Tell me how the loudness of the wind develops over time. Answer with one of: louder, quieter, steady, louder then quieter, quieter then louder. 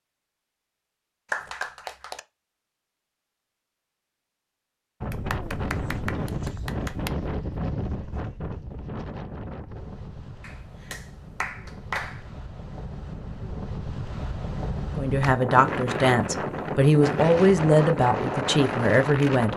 quieter then louder.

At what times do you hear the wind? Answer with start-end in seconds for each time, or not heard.
5.0-19.5.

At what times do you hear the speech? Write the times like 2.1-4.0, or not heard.
14.9-19.5.